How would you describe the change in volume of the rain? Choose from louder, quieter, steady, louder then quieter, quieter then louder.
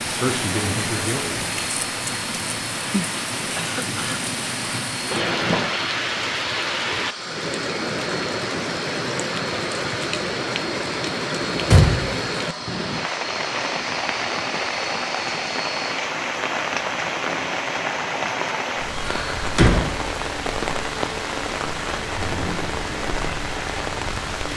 steady.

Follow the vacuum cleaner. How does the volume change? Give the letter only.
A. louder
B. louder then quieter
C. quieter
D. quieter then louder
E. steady
E.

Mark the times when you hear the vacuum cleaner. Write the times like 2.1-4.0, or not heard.
0.0-24.5.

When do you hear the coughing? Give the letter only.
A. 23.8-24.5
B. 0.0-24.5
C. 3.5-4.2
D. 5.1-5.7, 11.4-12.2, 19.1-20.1
C.